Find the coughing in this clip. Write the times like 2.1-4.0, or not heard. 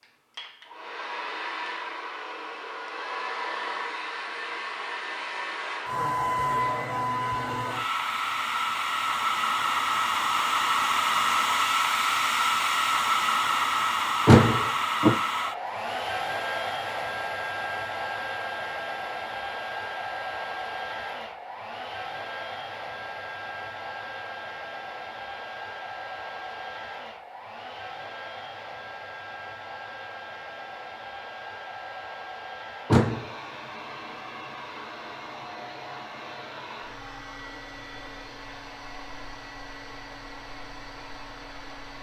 not heard.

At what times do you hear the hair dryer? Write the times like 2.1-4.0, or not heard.
0.0-41.9.